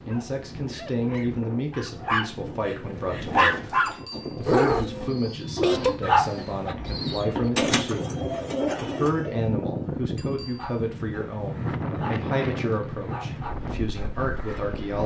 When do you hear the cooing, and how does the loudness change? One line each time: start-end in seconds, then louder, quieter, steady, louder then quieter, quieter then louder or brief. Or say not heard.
2.8-9.6 louder.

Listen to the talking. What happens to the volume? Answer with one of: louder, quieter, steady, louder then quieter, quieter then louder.
steady.